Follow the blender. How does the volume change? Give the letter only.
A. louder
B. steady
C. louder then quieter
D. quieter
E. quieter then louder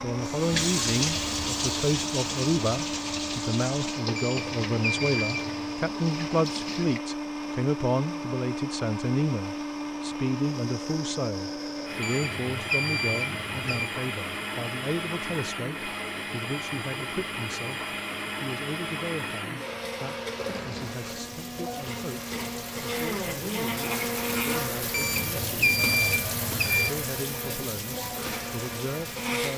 B.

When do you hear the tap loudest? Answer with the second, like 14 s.
1 s.